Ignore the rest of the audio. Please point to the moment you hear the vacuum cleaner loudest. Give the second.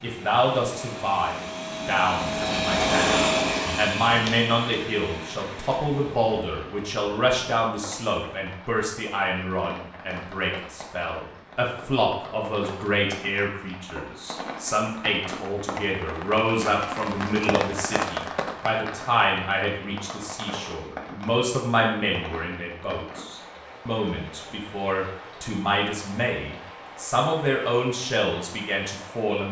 3 s.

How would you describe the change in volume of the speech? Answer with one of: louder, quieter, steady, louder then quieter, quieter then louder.
steady.